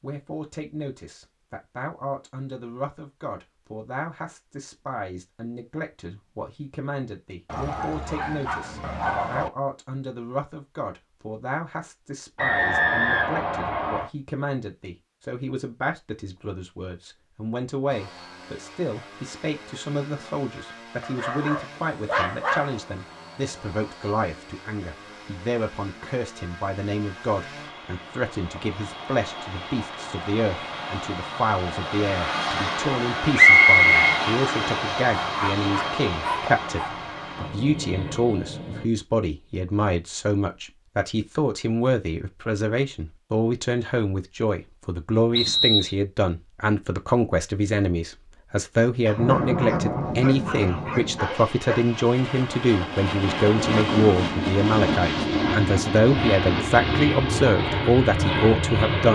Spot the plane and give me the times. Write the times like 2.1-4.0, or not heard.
17.9-38.9, 49.1-59.1.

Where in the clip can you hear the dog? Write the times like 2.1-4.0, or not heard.
7.5-9.5, 21.0-22.8, 35.2-37.0, 49.0-51.9.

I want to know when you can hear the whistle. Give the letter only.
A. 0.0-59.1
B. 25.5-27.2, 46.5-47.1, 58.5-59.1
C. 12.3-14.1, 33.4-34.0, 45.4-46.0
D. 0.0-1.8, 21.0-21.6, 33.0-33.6
C.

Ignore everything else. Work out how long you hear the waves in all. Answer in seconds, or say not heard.
not heard.